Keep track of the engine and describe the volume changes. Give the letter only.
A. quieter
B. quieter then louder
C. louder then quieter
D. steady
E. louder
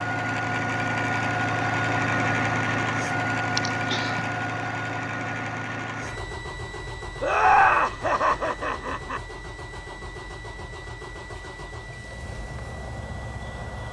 A.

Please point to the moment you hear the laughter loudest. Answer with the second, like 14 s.
8 s.